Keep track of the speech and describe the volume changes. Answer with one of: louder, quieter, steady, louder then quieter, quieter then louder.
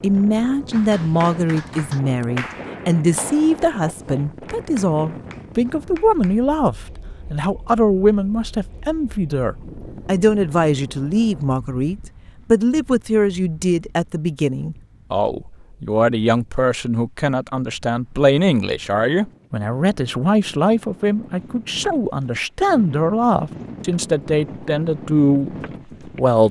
steady.